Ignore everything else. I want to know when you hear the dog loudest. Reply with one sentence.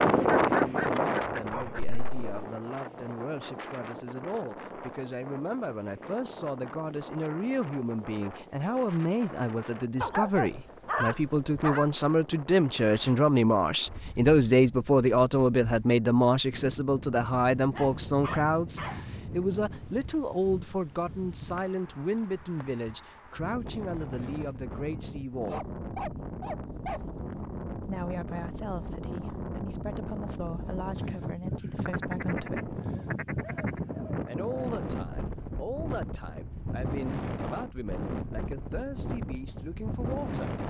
The volume of the dog peaks at 11 seconds.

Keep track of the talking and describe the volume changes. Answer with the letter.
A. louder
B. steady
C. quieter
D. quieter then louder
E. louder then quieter
E.